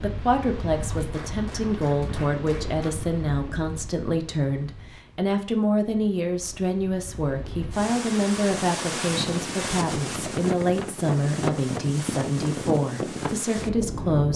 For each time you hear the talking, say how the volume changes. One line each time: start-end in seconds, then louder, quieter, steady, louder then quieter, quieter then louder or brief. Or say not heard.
0.0-14.3 steady.